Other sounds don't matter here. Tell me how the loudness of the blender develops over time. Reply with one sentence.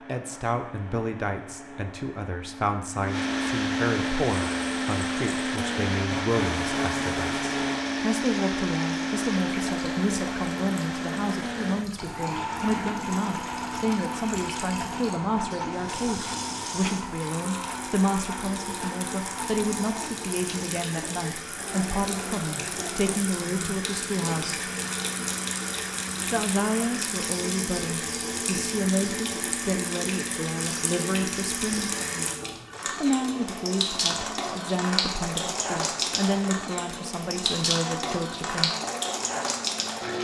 The loudness of the blender goes down.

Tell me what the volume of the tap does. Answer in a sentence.
The loudness of the tap goes up.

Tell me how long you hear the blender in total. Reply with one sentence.
The blender can be heard for 40 seconds in total.